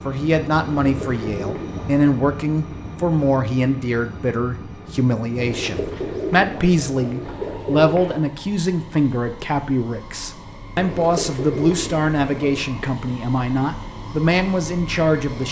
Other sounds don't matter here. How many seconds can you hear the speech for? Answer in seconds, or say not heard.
15 s.